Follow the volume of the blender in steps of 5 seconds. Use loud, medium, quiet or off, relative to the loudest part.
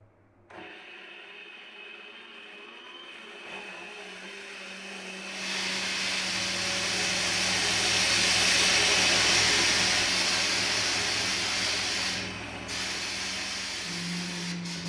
quiet, loud, medium.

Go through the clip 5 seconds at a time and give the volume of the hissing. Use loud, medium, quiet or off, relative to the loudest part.
off, loud, loud.